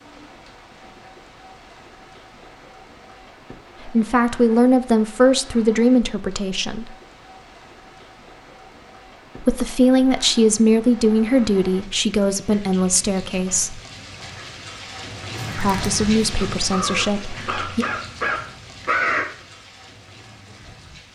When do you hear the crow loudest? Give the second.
19 s.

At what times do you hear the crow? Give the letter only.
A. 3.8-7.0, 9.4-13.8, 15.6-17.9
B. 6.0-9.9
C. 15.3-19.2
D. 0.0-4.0
C.